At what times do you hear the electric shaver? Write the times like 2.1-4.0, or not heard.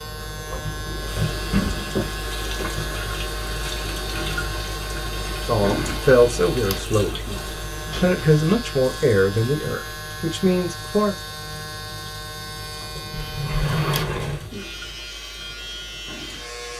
0.0-16.7.